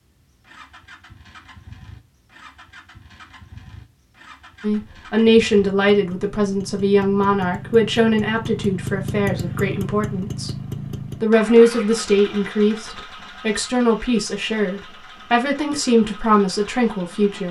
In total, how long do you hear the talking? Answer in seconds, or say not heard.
12 s.